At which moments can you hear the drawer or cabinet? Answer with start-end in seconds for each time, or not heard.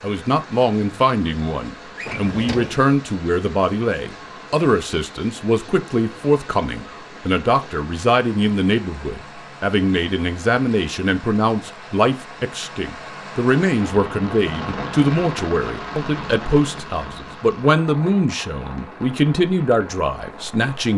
1.9-2.9.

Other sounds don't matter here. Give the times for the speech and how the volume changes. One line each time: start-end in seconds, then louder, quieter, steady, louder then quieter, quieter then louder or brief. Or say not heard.
0.0-20.9 steady.